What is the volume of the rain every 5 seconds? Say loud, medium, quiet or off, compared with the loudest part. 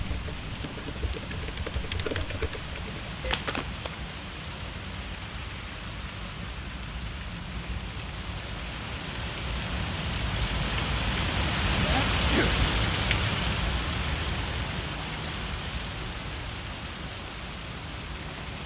medium, medium, loud, medium.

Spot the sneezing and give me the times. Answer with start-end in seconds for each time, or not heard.
11.8-12.7.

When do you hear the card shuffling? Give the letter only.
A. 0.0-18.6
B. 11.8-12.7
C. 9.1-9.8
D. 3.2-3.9
D.